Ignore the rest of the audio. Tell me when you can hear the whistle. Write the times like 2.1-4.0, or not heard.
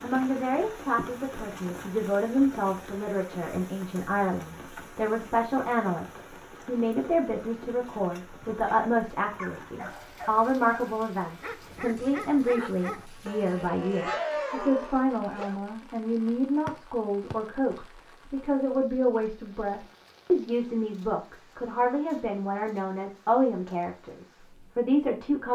16.6-17.4.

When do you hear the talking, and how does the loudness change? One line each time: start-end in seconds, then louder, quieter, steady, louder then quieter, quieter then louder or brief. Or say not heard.
0.0-25.4 steady.